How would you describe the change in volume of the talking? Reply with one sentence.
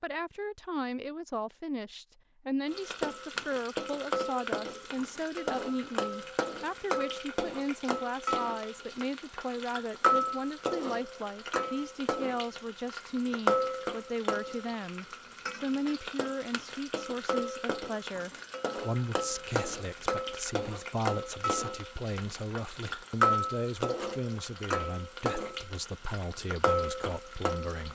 The volume of the talking stays about the same.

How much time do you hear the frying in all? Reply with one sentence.
The frying can be heard for 25 seconds in total.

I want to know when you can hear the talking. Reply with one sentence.
The talking can be heard from 0.0 to 27.9 s.